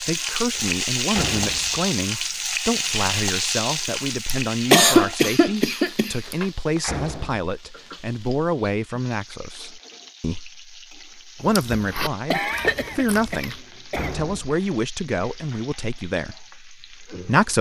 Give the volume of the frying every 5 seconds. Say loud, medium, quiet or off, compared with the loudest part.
loud, quiet, quiet, quiet.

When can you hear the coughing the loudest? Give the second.
5 s.